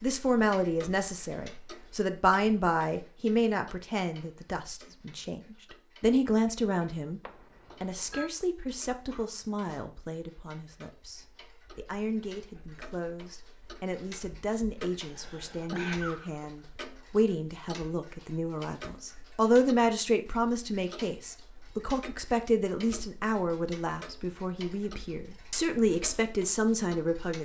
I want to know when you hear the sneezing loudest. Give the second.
16 s.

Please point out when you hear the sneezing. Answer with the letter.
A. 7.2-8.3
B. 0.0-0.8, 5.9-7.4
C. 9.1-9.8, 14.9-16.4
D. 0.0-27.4
C.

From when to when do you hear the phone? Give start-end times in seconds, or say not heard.
7.2-8.3.